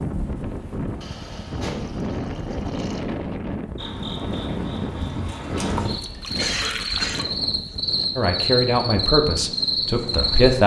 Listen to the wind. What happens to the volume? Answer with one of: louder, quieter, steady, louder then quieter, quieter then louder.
quieter.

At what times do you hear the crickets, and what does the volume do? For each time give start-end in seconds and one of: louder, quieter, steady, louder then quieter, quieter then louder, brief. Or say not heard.
3.8-10.6 louder.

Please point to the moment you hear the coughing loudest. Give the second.
7 s.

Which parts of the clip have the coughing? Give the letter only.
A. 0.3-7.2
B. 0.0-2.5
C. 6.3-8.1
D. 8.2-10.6
C.